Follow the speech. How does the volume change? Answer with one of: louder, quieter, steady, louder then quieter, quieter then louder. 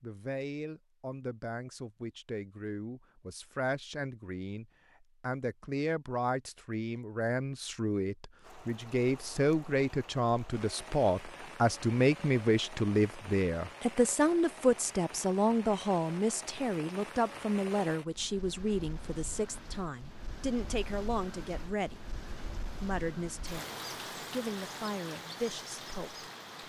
louder then quieter.